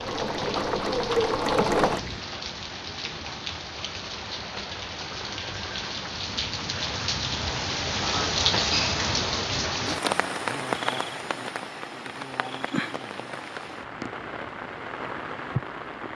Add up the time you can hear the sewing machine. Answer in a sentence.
The sewing machine can be heard for 2 seconds in total.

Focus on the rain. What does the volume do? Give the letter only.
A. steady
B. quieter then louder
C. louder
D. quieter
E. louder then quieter
E.